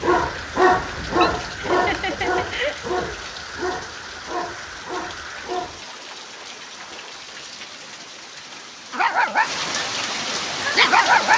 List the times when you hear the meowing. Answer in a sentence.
You can hear the meowing from 0.7 to 1.3 s.